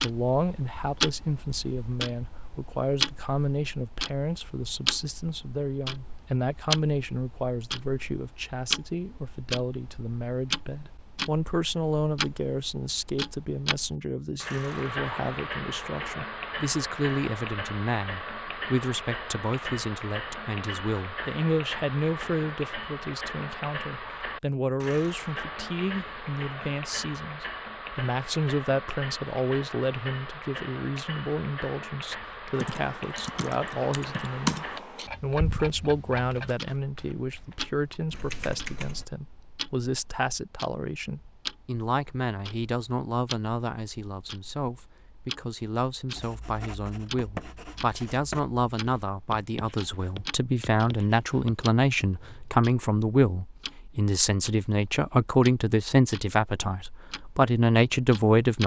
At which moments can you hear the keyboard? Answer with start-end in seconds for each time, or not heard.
32.5-39.0.